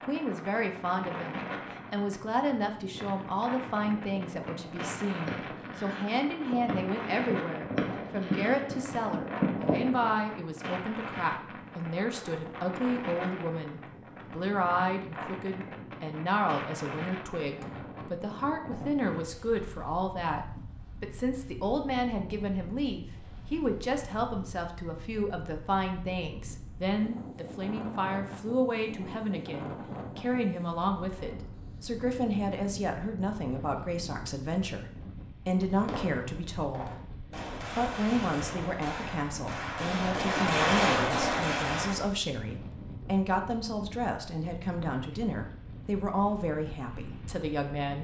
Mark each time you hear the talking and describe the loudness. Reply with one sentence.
The talking can be heard from 0.0 to 47.9 s, at a steady volume.